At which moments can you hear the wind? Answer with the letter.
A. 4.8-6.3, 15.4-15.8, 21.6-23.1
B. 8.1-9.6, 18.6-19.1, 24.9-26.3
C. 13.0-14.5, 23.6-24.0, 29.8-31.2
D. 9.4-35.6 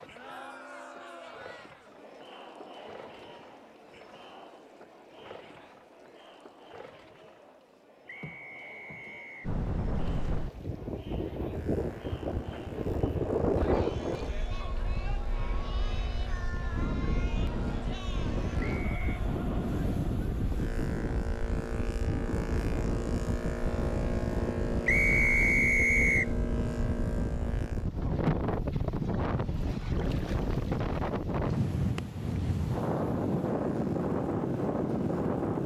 D.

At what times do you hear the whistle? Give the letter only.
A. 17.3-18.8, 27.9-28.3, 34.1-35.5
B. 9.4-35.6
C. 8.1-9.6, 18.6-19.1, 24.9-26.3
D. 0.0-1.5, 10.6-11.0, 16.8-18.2
C.